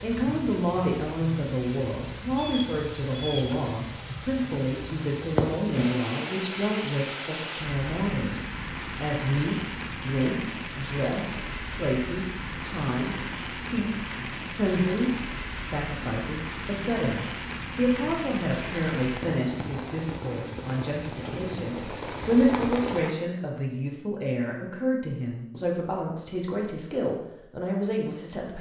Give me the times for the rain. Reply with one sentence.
You can hear the rain from 0.0 to 23.1 s.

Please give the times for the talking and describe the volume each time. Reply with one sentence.
The talking can be heard from 0.0 to 28.5 s, at a steady volume.